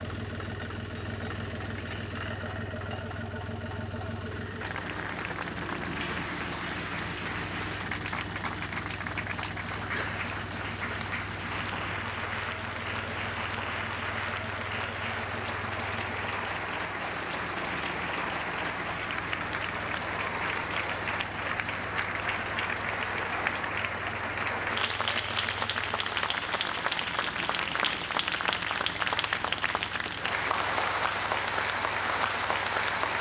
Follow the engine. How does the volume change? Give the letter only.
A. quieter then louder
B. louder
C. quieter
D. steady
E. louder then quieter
C.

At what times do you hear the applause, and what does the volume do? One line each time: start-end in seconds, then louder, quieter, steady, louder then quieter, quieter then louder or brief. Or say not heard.
4.6-33.1 louder.